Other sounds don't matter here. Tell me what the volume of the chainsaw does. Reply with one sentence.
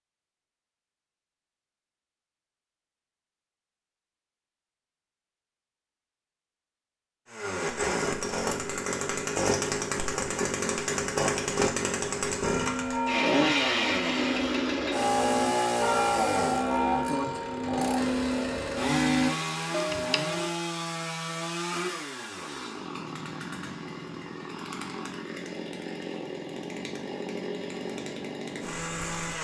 The loudness of the chainsaw goes down.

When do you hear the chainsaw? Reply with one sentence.
You can hear the chainsaw from 7.3 to 29.3 s.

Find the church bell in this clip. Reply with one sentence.
You can hear the church bell from 12.4 to 20.5 s.